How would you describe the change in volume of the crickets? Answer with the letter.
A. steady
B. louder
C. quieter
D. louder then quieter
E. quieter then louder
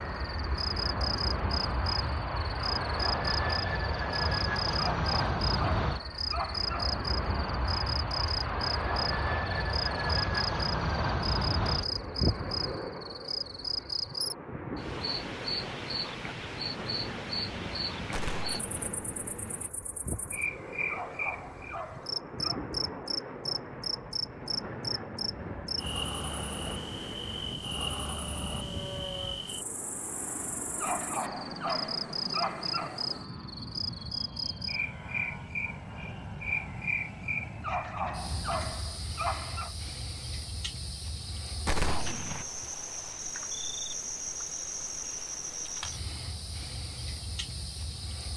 A.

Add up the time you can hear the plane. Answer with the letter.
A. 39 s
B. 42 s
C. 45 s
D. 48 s
A.